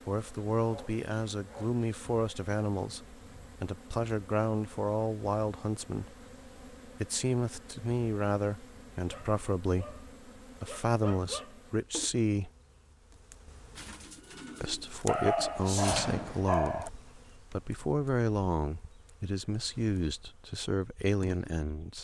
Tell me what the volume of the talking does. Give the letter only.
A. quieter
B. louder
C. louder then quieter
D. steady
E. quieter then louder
D.